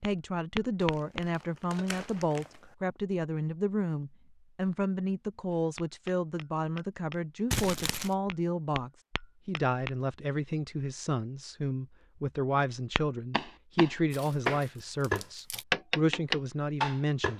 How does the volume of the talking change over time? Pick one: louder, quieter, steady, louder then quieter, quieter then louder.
steady.